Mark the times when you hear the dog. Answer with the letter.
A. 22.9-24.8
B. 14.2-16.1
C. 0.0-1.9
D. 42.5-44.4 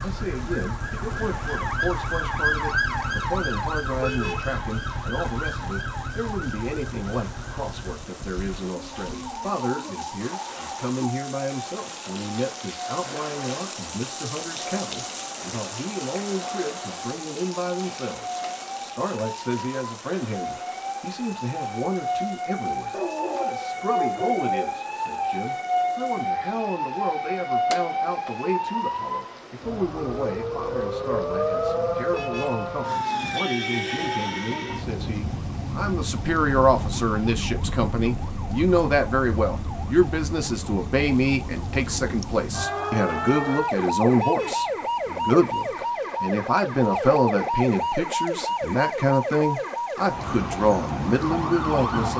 A.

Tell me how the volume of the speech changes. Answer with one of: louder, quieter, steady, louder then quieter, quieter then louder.
louder.